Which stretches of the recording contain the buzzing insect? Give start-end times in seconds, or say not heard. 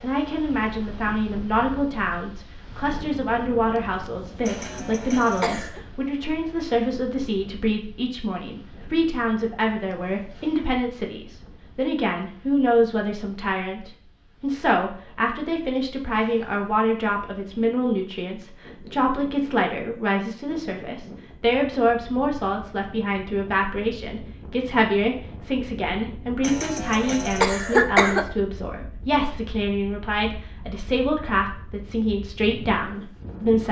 not heard.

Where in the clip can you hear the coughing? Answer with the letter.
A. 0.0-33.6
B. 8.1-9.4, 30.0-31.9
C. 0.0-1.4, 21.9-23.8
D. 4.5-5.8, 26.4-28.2
D.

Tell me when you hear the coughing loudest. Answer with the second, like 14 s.
28 s.